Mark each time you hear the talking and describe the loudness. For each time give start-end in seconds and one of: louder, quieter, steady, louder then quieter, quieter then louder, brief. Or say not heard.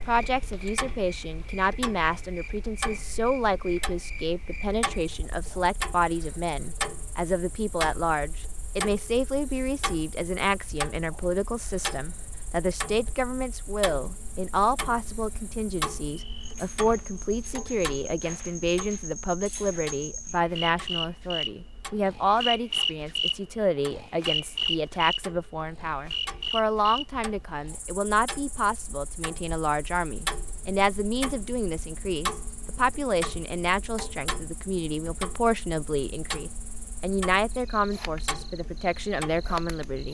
0.1-40.0 steady.